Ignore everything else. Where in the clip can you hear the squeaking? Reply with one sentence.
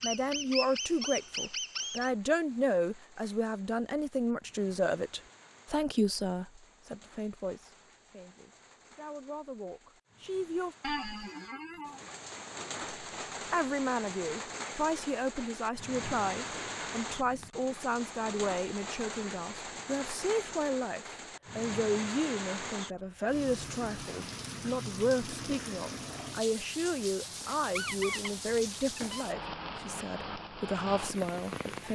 You can hear the squeaking from 0.0 to 2.1 s, from 10.8 to 12.1 s and from 27.7 to 29.2 s.